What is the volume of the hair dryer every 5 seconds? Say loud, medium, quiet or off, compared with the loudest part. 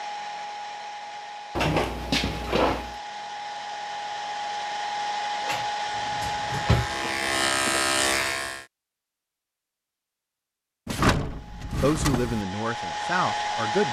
medium, loud, loud.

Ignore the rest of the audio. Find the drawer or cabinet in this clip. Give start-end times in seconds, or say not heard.
1.6-3.0, 5.4-7.0, 10.8-12.4.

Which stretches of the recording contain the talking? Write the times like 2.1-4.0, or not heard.
11.8-13.8.